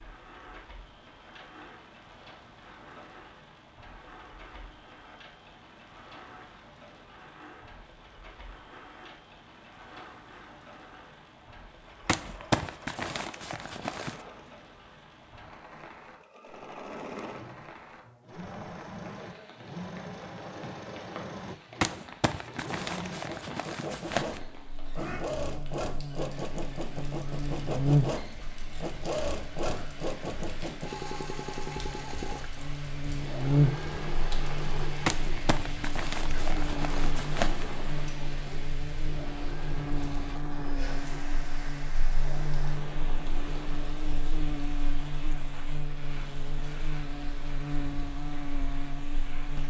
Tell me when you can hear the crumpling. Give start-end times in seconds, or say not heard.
12.1-14.2, 21.8-24.4, 35.0-37.7.